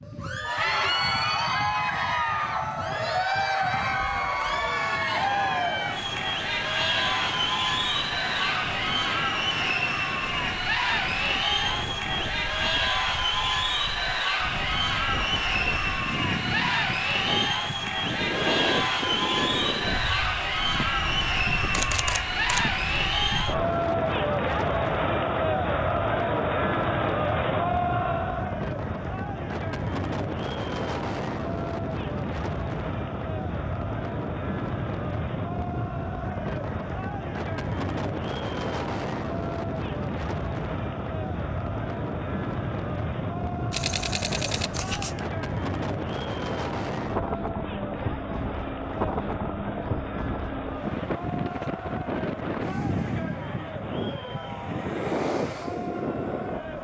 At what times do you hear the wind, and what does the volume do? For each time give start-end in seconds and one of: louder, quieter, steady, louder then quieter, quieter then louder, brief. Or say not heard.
0.0-56.7 louder.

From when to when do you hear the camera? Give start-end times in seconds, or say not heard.
21.7-22.8, 43.7-45.2.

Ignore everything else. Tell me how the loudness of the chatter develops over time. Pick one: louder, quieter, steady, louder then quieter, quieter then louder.
quieter.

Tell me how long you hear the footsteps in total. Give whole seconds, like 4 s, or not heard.
not heard.